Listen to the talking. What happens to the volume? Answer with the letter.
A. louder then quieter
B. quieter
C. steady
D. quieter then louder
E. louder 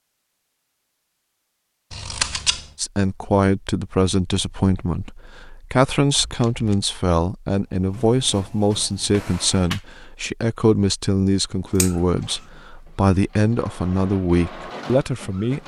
C.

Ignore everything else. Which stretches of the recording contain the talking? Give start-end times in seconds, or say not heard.
2.8-15.6.